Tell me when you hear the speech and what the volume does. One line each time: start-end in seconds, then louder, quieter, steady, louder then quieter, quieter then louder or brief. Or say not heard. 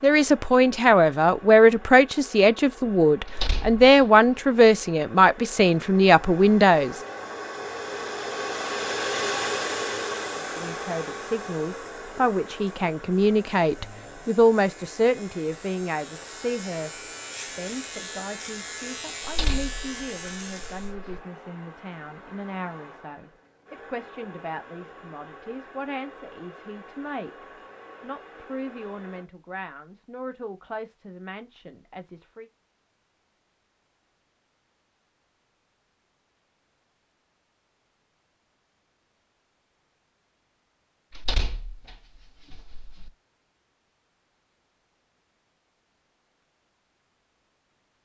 0.0-7.0 steady
10.3-32.5 quieter.